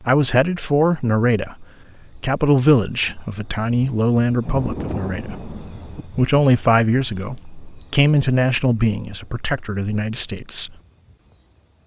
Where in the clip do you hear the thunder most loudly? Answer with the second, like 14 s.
5 s.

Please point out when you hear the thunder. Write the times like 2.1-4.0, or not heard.
4.4-6.0.